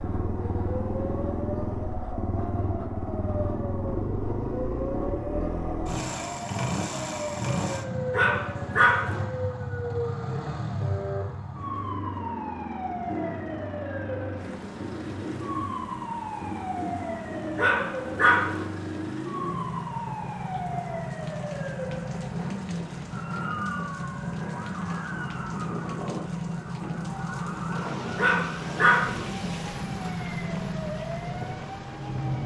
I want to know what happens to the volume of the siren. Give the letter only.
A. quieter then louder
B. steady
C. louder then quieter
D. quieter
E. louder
B.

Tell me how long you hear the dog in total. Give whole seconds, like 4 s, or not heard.
3 s.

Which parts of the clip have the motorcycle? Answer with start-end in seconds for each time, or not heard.
0.0-32.4.